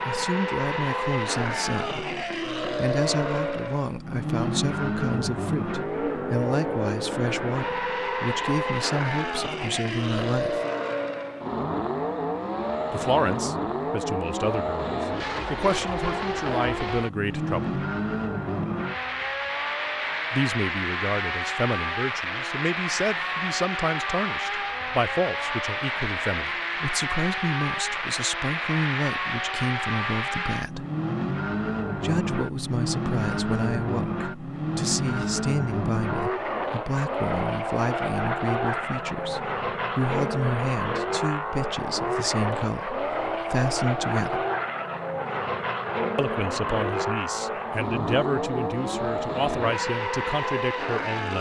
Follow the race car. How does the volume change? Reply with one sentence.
The volume of the race car stays about the same.